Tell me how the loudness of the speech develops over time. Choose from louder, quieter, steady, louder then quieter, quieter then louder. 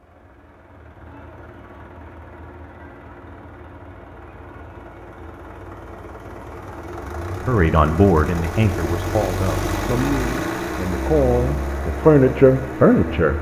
quieter then louder.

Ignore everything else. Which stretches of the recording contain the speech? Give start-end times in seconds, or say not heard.
7.5-13.3.